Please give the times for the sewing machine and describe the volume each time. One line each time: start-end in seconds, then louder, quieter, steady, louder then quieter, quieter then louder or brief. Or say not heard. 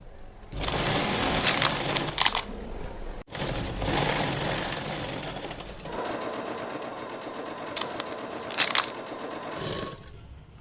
0.0-10.5 quieter.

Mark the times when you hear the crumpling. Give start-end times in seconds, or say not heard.
0.6-2.5, 7.8-8.9.